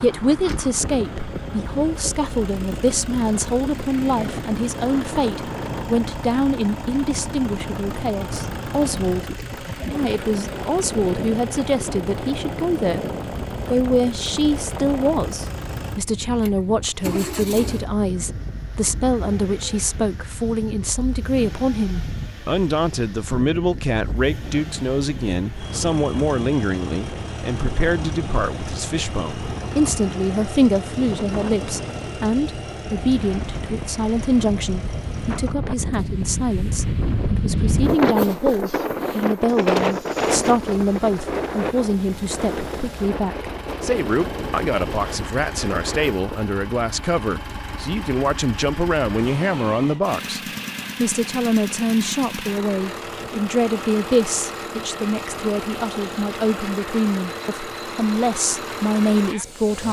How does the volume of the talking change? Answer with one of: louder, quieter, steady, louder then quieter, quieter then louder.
steady.